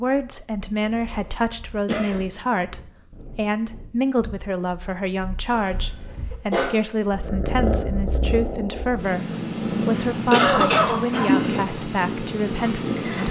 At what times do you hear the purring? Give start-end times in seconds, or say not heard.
0.1-13.2.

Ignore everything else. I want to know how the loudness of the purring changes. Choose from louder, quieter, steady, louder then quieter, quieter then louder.
louder.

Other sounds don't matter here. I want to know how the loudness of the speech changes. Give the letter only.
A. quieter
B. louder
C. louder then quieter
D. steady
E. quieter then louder
D.